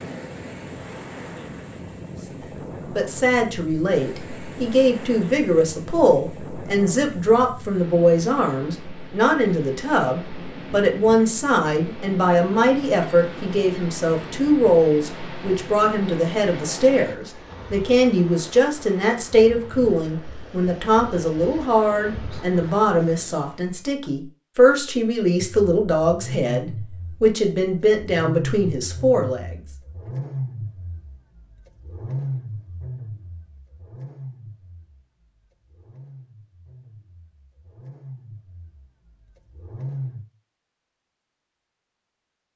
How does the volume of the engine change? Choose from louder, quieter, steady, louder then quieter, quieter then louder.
quieter.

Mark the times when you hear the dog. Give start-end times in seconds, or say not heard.
not heard.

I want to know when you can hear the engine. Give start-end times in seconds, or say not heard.
25.4-40.2.